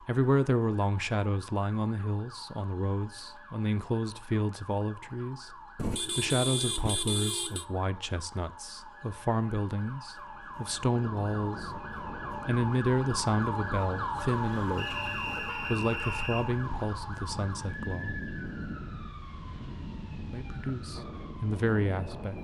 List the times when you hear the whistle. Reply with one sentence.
You can hear the whistle from 14.8 to 16.4 s.